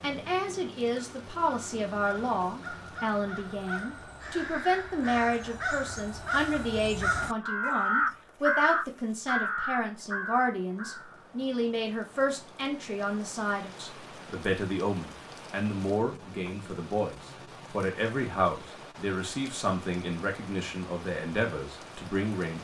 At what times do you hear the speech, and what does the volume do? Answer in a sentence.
The speech can be heard from 0.0 to 22.5 s, at a steady volume.